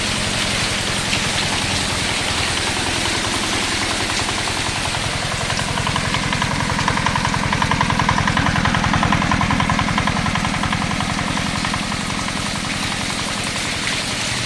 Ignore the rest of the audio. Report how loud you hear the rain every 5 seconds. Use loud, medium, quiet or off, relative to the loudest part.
loud, medium, loud.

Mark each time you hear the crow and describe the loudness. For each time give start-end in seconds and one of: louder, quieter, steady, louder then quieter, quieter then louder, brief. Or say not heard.
not heard.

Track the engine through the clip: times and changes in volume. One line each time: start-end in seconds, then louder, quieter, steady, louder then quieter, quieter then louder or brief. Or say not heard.
0.0-14.4 louder then quieter.